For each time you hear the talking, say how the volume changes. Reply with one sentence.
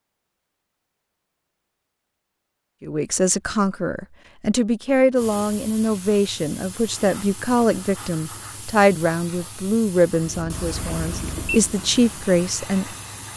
You can hear the talking from 2.8 to 12.9 s, at a steady volume.